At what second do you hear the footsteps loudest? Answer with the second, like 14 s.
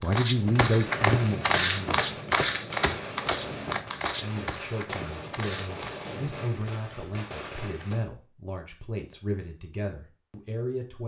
2 s.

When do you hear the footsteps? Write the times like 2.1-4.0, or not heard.
0.0-6.0.